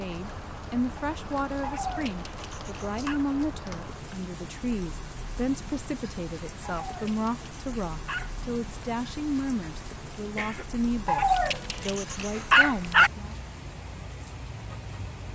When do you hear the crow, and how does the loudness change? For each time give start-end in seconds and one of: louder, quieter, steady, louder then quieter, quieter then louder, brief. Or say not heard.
not heard.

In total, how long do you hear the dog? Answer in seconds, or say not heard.
5 s.